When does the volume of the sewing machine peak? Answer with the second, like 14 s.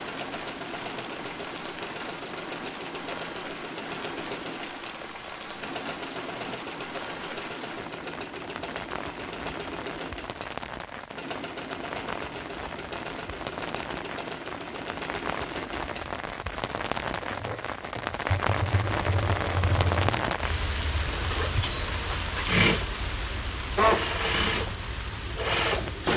24 s.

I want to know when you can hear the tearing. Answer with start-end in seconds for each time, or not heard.
not heard.